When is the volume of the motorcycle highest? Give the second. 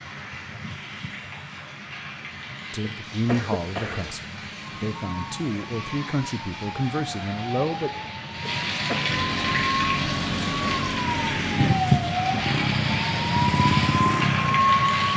14 s.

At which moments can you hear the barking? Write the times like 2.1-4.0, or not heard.
not heard.